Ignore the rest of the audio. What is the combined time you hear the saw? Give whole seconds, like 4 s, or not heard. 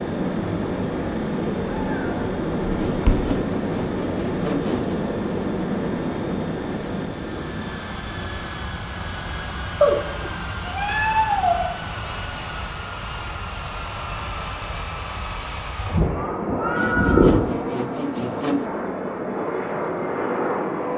4 s.